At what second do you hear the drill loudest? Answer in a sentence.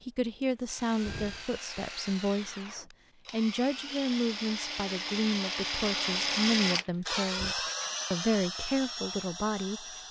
The loudest moment of the drill is at 6 seconds.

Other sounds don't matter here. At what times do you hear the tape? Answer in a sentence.
The tape can't be heard in this clip.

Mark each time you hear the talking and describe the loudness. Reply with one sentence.
You can hear the talking from 0.0 to 9.9 s, at a steady volume.